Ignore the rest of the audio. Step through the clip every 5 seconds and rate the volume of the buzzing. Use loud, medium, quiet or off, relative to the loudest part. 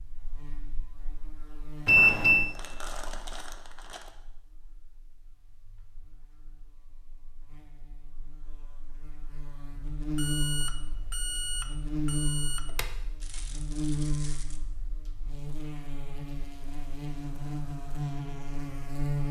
quiet, quiet, loud, loud.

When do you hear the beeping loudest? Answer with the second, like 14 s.
2 s.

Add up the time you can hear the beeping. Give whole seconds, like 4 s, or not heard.
3 s.